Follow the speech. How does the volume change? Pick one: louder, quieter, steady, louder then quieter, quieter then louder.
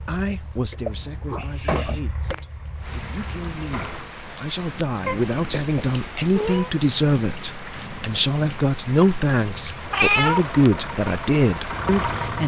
louder.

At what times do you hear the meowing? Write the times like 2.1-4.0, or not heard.
0.7-2.0, 5.0-6.7, 9.7-10.5.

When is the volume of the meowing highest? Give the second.
10 s.